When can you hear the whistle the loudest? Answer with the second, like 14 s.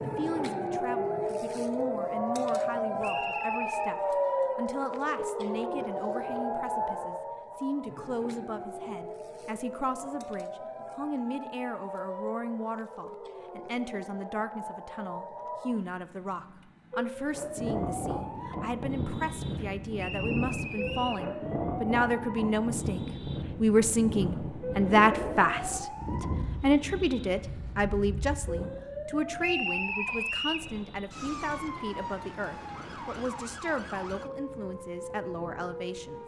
30 s.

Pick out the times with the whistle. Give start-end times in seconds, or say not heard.
3.0-4.0, 19.9-21.2, 29.4-30.7.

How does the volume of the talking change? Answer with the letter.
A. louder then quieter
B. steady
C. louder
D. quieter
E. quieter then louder
A.